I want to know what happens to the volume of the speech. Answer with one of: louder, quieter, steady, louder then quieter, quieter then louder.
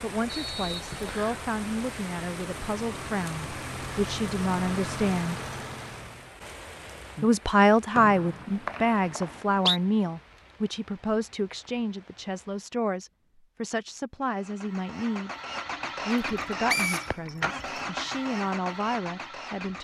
louder then quieter.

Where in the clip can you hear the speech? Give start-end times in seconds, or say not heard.
0.0-5.4, 7.2-15.3, 16.1-19.8.